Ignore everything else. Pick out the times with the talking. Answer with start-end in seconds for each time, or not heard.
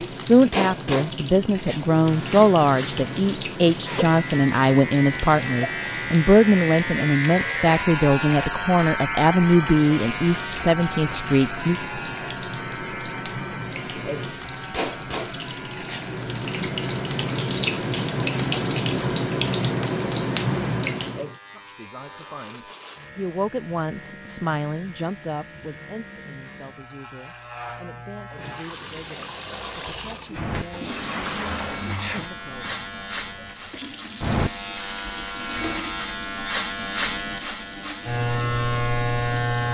0.1-11.8, 21.5-32.9.